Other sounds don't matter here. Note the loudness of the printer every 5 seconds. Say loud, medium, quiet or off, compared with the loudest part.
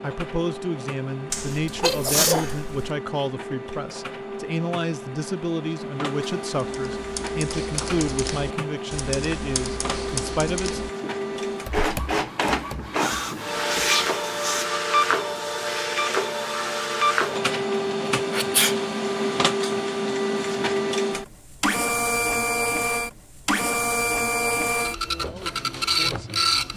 medium, medium, loud, loud, loud, loud.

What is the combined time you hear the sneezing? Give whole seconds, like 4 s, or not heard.
4 s.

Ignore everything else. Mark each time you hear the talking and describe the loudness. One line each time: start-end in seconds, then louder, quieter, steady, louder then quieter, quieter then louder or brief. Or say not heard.
0.0-10.8 steady
25.1-26.7 brief.